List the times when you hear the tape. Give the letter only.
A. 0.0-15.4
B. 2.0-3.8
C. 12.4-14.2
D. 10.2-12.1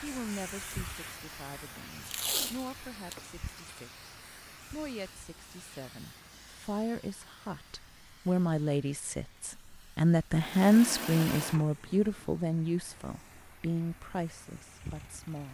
B.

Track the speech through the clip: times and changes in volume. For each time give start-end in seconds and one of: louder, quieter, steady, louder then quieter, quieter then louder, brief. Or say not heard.
0.0-15.4 louder then quieter.